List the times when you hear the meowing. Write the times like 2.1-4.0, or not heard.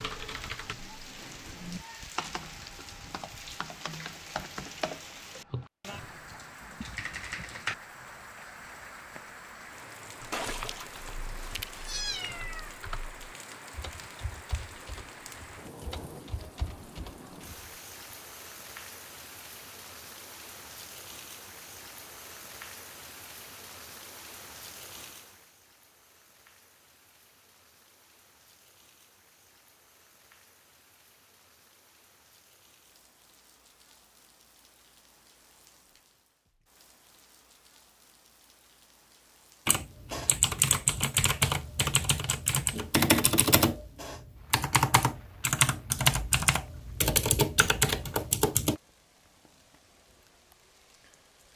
10.3-12.8.